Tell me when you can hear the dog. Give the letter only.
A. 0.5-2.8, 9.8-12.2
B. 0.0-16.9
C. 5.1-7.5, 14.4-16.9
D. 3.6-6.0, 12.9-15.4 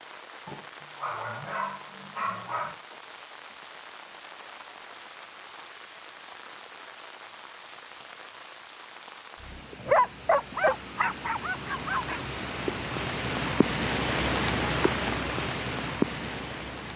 A.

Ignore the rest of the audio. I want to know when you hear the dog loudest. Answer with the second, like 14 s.
10 s.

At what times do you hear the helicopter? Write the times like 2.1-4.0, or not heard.
not heard.